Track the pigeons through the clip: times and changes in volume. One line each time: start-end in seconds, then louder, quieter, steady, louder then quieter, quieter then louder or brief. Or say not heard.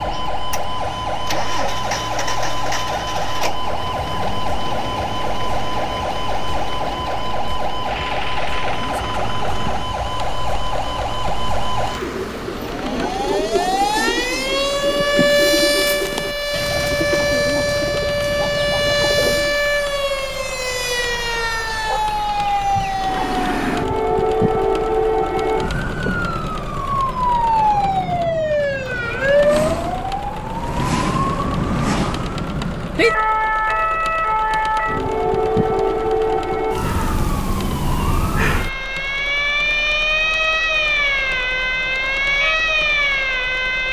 11.8-19.6 steady.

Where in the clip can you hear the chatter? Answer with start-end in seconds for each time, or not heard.
not heard.